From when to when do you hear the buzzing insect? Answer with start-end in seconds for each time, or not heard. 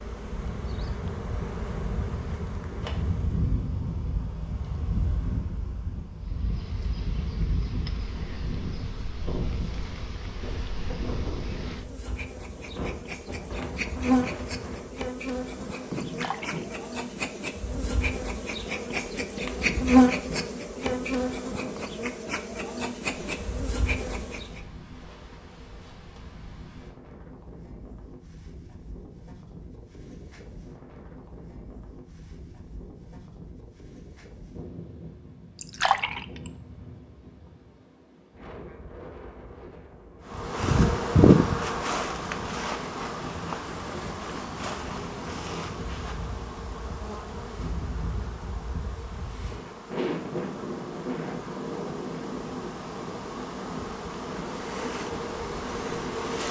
0.0-3.5, 6.2-24.6, 40.2-56.4.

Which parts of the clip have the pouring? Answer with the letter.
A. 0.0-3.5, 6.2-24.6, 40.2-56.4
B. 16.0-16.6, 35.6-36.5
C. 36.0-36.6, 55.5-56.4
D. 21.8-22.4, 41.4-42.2
B.